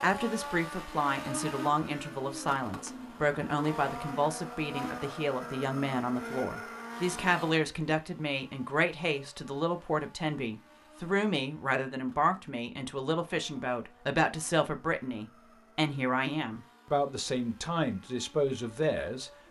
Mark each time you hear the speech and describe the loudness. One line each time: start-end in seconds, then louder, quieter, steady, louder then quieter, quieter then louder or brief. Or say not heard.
0.0-19.3 steady.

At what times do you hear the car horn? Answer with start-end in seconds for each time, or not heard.
not heard.